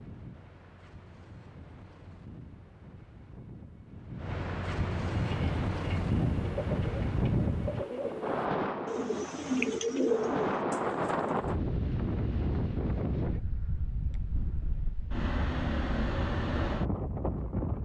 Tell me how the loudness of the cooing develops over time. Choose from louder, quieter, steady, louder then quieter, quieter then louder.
louder.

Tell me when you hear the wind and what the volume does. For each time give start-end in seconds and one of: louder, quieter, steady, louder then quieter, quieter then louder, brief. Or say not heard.
0.0-17.7 louder.